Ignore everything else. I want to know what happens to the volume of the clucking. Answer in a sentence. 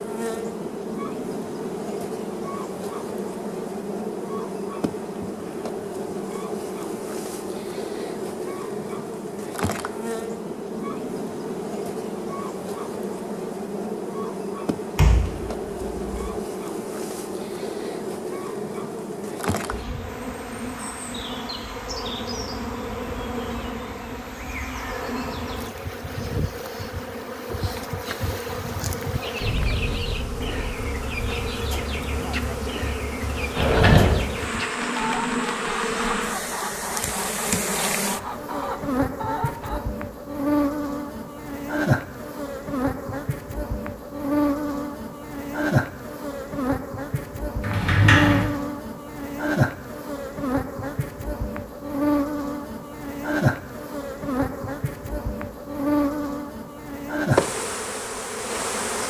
The loudness of the clucking stays about the same.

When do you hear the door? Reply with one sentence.
The door can be heard from 14.9 to 16.4 s, from 33.5 to 34.2 s and from 47.6 to 48.5 s.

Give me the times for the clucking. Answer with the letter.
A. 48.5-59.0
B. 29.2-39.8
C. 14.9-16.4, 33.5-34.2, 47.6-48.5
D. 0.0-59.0
B.